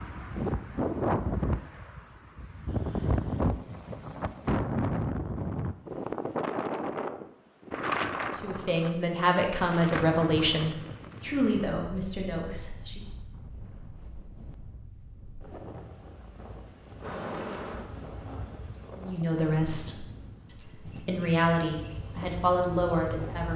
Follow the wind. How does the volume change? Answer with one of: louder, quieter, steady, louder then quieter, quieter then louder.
quieter.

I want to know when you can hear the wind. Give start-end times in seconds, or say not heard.
0.0-23.5.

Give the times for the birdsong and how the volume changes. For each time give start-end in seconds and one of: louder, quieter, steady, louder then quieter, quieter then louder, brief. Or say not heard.
not heard.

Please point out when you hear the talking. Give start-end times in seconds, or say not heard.
8.4-13.0, 18.9-23.5.